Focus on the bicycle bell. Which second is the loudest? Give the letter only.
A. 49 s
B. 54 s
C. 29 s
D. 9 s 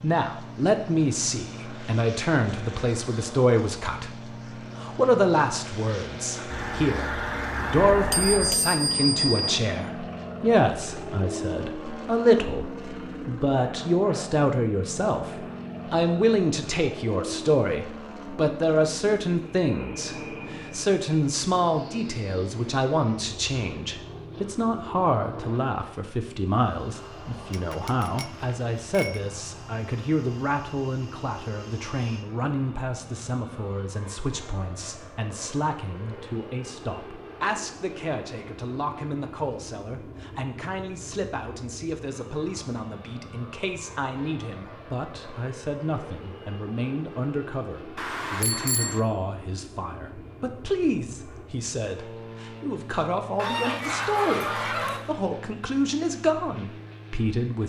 D.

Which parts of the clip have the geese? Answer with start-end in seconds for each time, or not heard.
6.5-8.5, 53.4-55.0.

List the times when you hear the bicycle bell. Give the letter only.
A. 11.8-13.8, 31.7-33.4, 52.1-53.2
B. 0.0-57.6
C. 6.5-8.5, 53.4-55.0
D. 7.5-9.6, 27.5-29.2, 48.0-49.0
D.